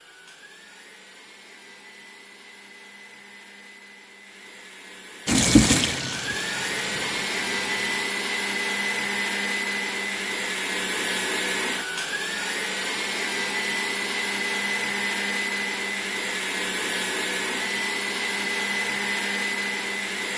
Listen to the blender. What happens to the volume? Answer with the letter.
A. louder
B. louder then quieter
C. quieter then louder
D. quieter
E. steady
A.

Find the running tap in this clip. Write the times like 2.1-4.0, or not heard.
5.2-8.1.